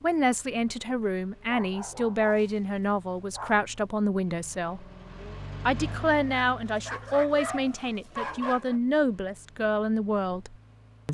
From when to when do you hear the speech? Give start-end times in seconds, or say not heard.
0.0-4.8, 5.7-11.1.